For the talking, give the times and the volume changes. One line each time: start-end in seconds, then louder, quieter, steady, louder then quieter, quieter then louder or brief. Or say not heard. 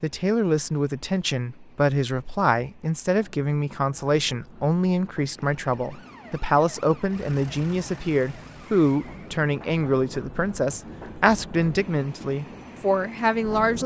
0.0-13.8 steady.